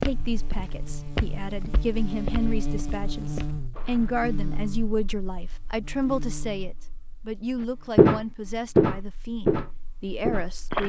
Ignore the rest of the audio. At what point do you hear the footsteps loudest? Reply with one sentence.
The loudest moment of the footsteps is at 8 seconds.